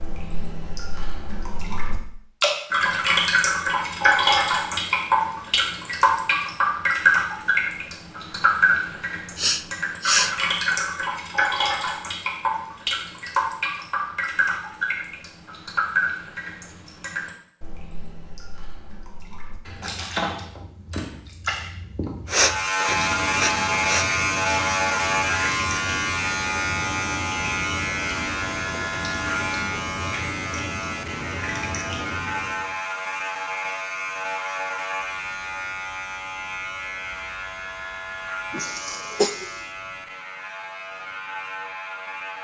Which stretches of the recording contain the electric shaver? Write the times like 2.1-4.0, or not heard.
22.3-42.3.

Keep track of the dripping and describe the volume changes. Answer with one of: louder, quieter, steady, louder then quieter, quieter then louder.
quieter.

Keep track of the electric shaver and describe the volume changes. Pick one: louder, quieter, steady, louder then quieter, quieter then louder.
quieter.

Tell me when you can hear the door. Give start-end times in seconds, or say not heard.
not heard.